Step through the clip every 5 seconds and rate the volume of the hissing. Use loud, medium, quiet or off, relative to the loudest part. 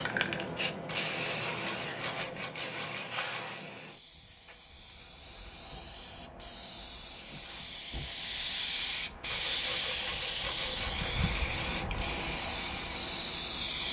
medium, medium, loud.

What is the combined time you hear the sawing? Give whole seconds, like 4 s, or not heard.
6 s.